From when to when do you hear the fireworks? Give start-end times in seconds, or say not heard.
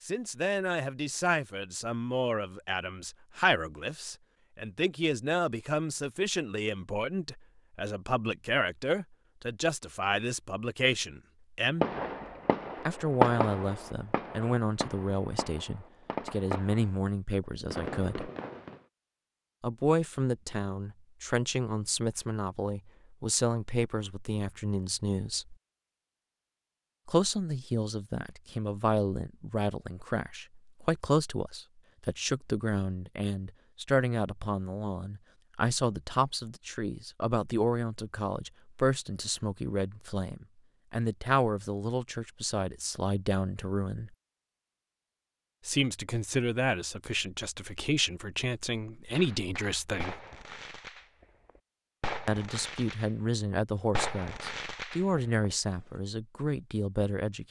11.8-18.8, 49.1-55.5.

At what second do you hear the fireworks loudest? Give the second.
13 s.